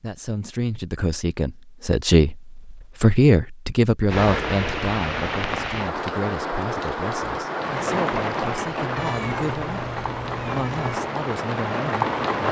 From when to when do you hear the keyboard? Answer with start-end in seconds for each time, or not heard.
not heard.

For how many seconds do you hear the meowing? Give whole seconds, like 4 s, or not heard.
2 s.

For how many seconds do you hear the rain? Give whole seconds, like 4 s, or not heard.
8 s.